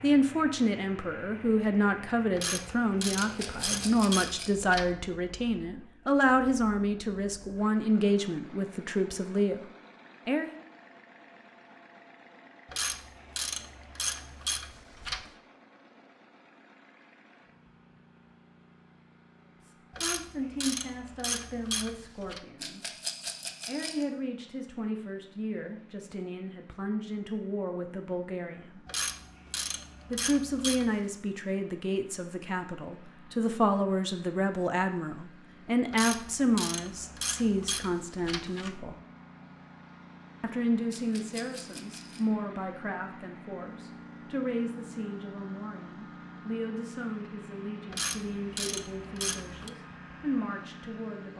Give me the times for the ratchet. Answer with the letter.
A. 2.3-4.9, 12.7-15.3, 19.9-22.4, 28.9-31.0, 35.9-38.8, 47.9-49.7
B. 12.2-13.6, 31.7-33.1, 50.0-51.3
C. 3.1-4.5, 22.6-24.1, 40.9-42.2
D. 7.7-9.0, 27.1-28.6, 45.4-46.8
A.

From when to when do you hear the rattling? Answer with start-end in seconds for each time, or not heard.
3.1-4.5, 22.6-24.1, 40.9-42.2.